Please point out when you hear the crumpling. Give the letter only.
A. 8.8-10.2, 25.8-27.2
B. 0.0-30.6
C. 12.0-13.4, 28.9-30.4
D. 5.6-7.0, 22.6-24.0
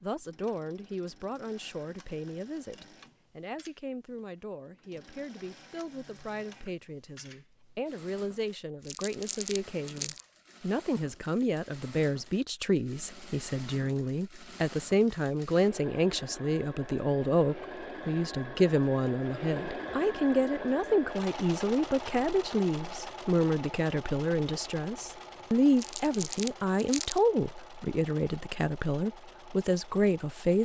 A.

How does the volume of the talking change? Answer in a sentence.
The loudness of the talking goes up.